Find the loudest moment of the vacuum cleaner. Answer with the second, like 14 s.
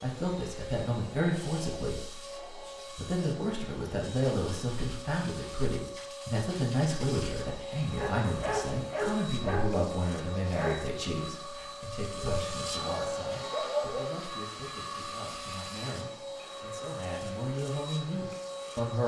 13 s.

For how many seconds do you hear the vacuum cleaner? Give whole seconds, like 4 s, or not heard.
19 s.